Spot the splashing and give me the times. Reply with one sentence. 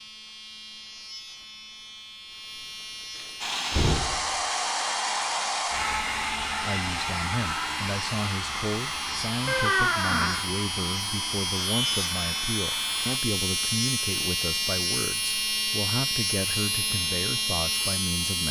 You can't hear the splashing here.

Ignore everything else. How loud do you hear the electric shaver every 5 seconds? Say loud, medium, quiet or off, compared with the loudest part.
quiet, medium, loud, loud.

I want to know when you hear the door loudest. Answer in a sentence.
The loudest moment of the door is at 10 seconds.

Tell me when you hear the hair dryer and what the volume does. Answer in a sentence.
You can hear the hair dryer from 3.4 to 13.2 s, getting quieter.